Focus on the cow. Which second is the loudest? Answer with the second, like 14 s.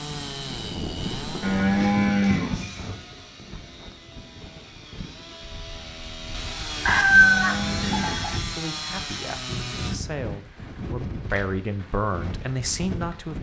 2 s.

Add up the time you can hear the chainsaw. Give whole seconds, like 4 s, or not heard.
10 s.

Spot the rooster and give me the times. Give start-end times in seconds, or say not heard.
6.8-8.4.